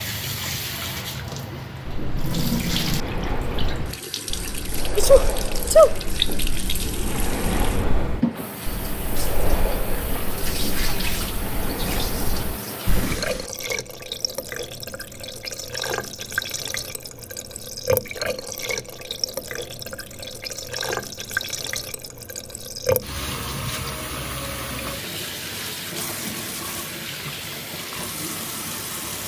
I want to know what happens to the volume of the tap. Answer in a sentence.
The volume of the tap stays about the same.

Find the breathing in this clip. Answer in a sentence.
You can hear the breathing from 1.9 to 13.5 s.